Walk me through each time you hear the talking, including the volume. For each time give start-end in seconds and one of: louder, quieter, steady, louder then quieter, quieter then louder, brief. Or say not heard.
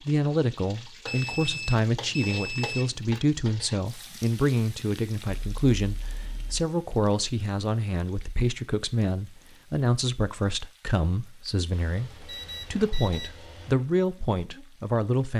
0.0-15.3 steady.